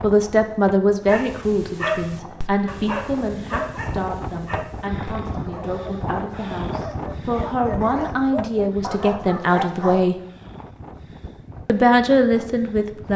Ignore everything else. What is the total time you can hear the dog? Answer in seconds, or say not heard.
9 s.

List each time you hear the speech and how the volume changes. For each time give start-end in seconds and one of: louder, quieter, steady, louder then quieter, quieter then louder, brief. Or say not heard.
0.0-10.2 quieter then louder
11.7-13.1 brief.